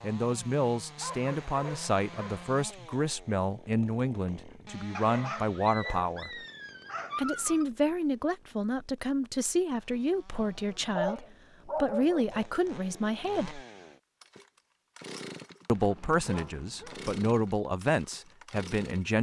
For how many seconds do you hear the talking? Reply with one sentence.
The talking can be heard for 16 seconds in total.